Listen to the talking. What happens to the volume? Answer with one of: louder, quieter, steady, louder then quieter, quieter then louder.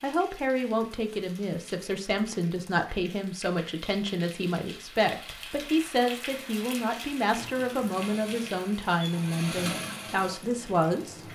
steady.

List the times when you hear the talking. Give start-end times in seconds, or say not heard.
0.0-11.2.